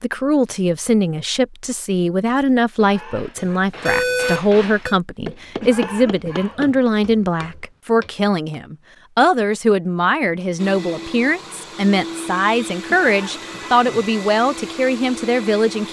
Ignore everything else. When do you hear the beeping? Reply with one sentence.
You can hear the beeping from 3.4 to 5.0 s.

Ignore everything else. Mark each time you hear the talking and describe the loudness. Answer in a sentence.
You can hear the talking from 0.0 to 15.8 s, at a steady volume.